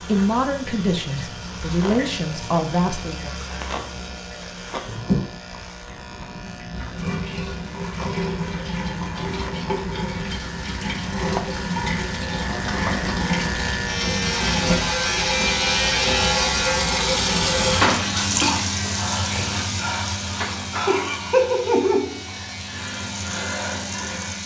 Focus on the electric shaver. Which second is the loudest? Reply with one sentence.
The loudest moment of the electric shaver is at 16 seconds.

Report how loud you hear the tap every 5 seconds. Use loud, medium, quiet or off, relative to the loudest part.
quiet, medium, loud, loud, loud.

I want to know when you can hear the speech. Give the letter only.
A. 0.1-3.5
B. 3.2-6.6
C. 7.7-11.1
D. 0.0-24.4
A.